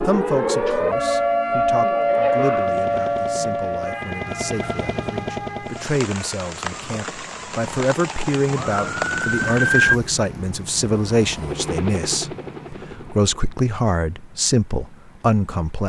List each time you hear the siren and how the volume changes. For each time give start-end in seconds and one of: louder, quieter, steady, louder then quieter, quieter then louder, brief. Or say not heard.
0.0-10.0 quieter then louder.